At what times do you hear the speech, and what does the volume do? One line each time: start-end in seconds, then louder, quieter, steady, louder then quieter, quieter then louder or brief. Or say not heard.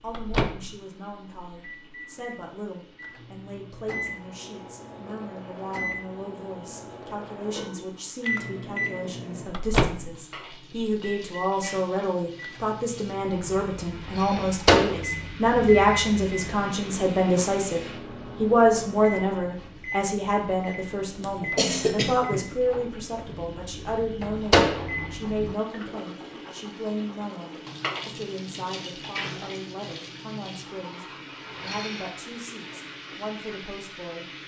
0.0-34.3 louder then quieter.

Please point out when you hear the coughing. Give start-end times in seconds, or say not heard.
21.2-22.4.